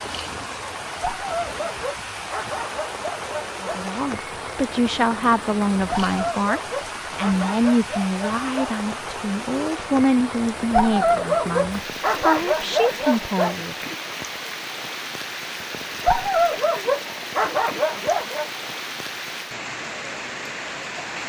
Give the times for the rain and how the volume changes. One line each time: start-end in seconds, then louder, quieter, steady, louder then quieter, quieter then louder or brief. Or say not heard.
0.0-21.2 steady.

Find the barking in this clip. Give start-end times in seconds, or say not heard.
1.0-3.8, 5.8-8.8, 10.7-13.6, 16.0-18.5.